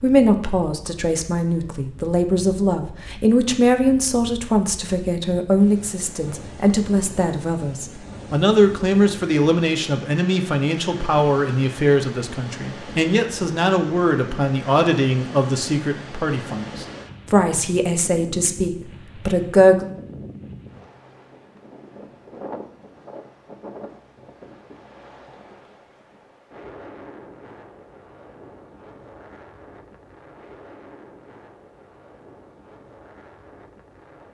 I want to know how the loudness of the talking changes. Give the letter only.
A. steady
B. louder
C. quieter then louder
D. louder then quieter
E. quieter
A.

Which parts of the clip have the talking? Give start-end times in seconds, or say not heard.
0.0-19.9.